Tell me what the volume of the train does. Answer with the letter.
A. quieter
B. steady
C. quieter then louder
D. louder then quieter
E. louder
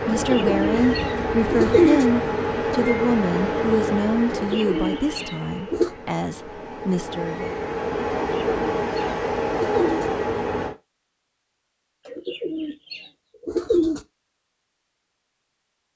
C.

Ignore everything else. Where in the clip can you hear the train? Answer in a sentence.
You can hear the train from 0.0 to 10.8 s.